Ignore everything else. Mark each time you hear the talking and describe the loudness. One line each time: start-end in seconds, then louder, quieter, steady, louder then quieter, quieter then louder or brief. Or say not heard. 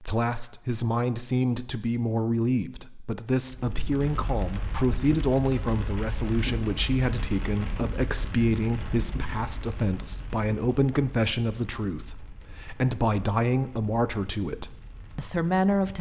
0.0-15.9 steady.